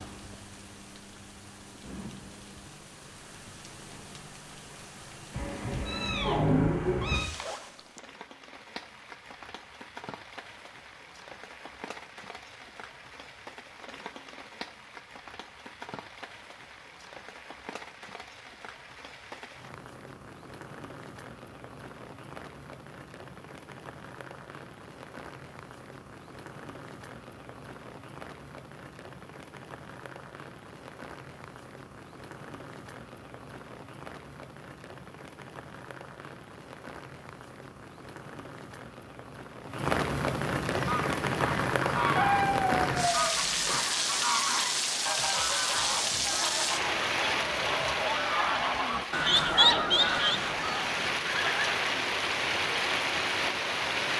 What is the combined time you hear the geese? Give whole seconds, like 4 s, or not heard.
11 s.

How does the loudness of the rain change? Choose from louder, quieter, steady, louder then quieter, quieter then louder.
louder.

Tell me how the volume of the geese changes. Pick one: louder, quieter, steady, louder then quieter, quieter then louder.
louder.